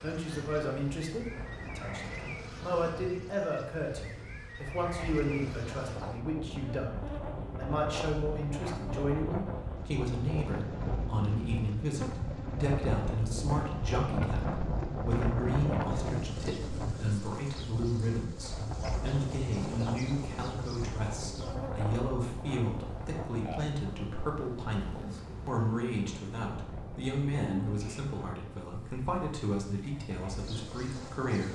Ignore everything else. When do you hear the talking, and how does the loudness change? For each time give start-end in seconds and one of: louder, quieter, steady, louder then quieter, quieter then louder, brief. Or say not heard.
0.0-31.4 steady.